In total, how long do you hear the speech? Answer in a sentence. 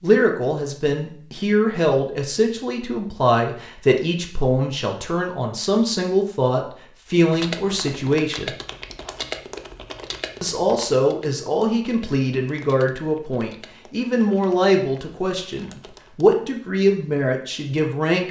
The speech can be heard for 16 seconds in total.